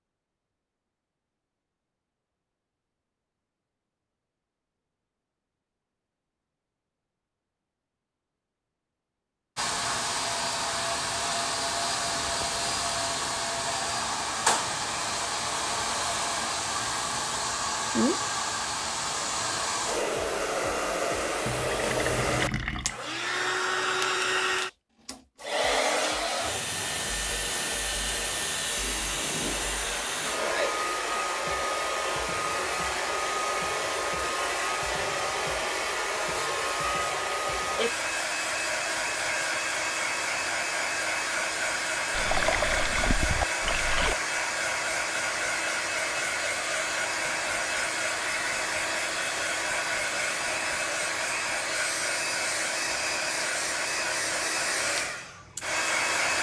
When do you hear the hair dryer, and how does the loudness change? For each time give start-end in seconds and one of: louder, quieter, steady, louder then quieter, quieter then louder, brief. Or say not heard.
9.6-56.3 steady.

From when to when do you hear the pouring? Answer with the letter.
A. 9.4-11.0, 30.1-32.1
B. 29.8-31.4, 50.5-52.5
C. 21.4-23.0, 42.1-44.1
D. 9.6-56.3
C.